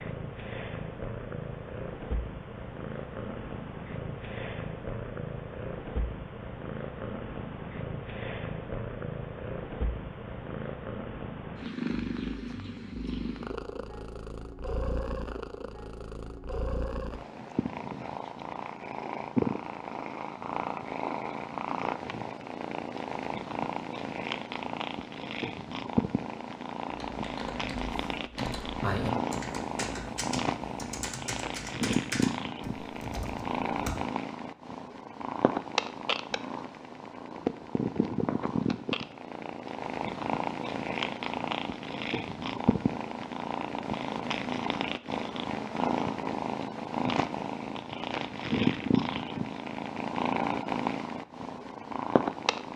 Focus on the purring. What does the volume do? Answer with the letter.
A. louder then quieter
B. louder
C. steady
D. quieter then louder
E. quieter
B.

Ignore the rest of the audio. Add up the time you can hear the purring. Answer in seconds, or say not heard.
53 s.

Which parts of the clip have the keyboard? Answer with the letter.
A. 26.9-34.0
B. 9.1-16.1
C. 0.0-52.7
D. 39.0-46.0
A.